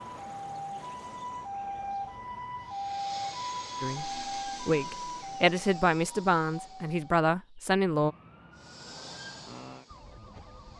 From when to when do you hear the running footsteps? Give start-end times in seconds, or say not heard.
not heard.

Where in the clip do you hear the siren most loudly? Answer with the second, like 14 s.
3 s.